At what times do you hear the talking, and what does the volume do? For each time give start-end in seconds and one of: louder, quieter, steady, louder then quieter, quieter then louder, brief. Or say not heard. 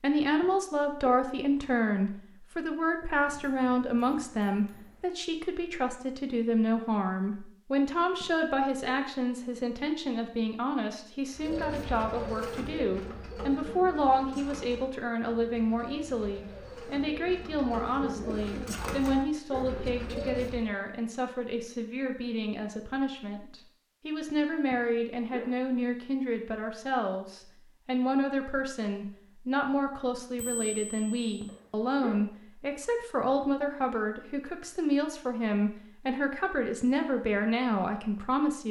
0.0-38.6 steady.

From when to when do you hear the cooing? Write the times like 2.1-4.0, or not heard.
11.3-20.7.